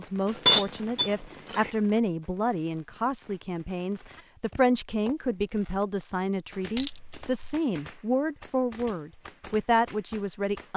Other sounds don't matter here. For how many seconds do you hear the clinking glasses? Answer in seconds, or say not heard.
2 s.